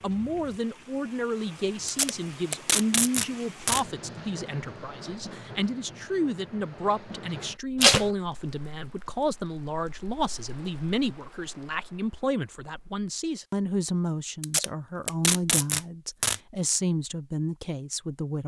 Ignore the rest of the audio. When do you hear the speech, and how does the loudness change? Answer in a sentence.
You can hear the speech from 0.0 to 18.4 s, at a steady volume.